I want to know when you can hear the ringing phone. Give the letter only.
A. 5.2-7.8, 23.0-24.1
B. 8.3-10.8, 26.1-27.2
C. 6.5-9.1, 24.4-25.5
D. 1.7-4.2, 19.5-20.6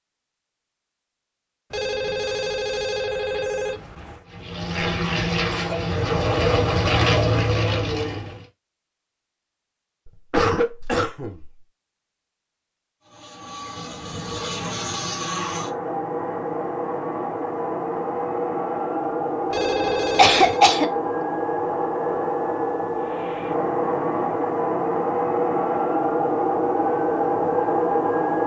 D.